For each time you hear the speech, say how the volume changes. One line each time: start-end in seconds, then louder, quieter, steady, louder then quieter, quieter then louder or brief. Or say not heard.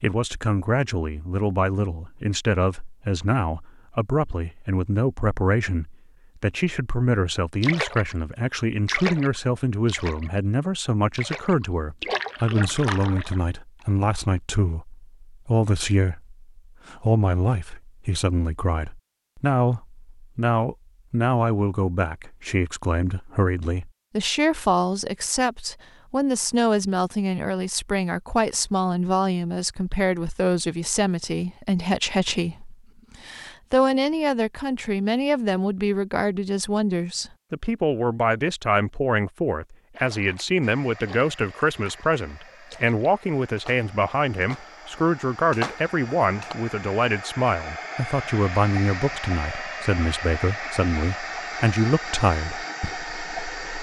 0.0-53.7 steady.